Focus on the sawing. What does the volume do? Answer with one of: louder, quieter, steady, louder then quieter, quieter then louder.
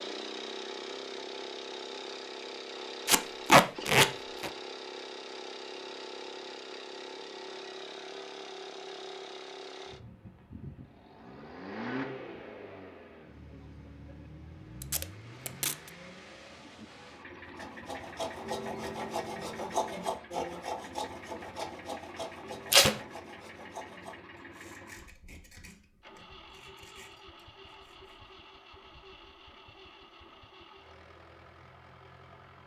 quieter.